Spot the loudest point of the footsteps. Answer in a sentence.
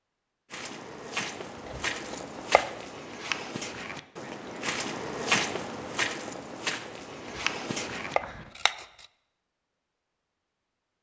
The loudest moment of the footsteps is at 5 seconds.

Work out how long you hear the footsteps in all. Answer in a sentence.
The footsteps can be heard for 8 seconds in total.